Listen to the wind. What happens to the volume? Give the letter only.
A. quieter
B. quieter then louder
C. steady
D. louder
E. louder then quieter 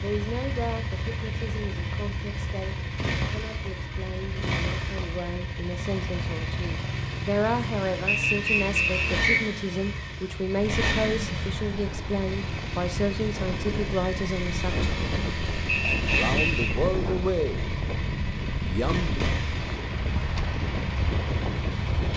D.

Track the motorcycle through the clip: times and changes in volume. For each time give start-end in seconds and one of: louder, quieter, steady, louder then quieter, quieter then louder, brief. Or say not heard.
0.0-22.1 steady.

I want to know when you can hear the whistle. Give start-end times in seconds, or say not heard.
8.1-9.4, 15.7-16.8.